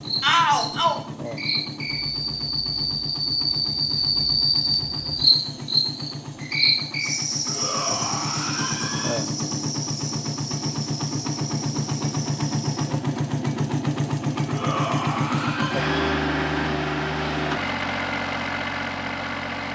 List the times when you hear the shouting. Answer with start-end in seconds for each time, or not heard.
0.2-1.0, 7.5-9.2, 14.4-16.2.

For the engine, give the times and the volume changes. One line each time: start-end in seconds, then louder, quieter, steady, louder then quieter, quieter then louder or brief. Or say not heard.
0.0-19.6 louder.